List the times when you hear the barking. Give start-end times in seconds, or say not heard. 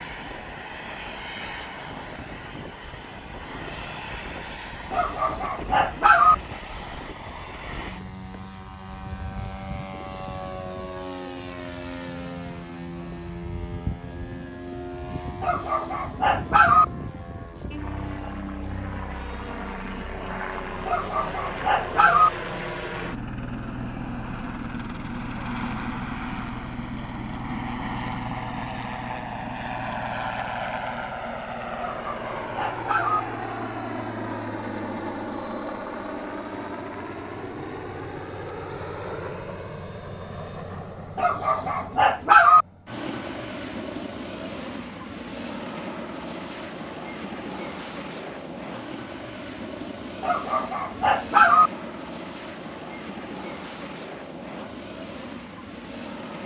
4.9-6.3, 15.4-16.9, 20.9-22.3, 31.8-33.2, 41.1-42.6, 50.2-51.7.